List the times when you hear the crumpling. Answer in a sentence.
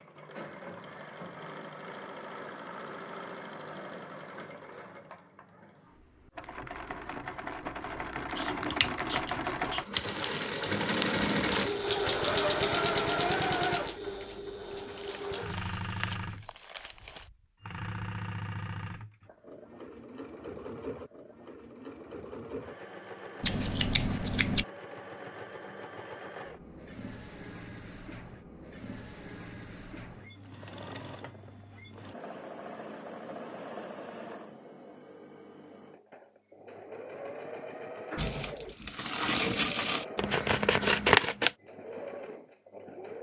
You can hear the crumpling from 9.9 to 11.9 s, from 14.8 to 17.3 s and from 38.1 to 40.0 s.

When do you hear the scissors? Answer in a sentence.
You can hear the scissors from 8.3 to 10.0 s, from 23.4 to 24.6 s and from 40.1 to 41.5 s.